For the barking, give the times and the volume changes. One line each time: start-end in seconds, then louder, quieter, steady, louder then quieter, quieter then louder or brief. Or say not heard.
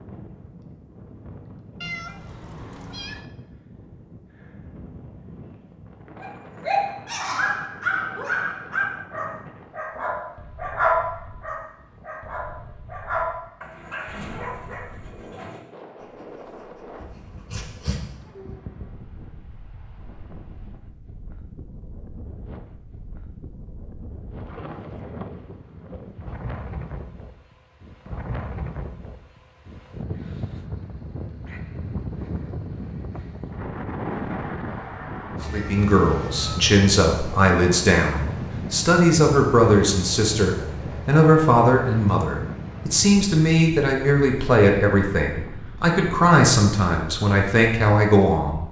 6.2-18.6 quieter.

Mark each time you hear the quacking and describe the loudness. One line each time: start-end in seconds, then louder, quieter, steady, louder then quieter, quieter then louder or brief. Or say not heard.
not heard.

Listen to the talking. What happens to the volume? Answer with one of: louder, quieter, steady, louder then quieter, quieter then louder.
steady.